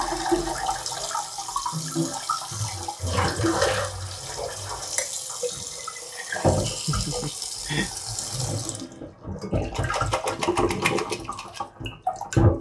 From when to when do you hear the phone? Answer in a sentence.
The phone can't be heard in this clip.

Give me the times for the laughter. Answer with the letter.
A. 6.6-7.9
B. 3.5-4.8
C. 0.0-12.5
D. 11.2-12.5
A.